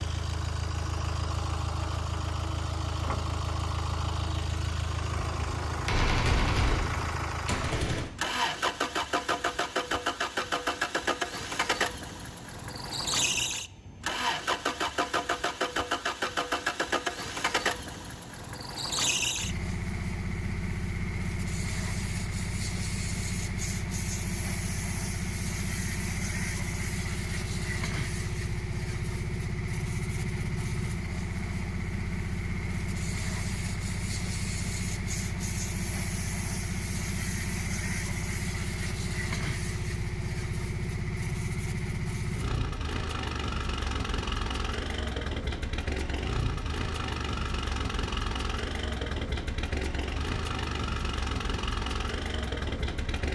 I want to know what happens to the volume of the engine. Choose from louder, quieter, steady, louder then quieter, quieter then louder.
steady.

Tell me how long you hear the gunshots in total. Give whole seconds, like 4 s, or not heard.
3 s.